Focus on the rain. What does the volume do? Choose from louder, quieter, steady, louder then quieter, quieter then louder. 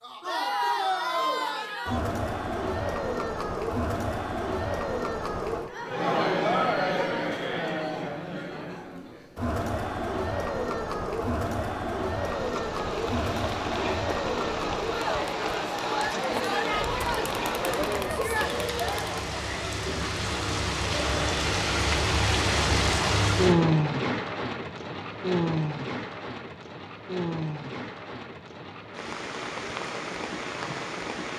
louder then quieter.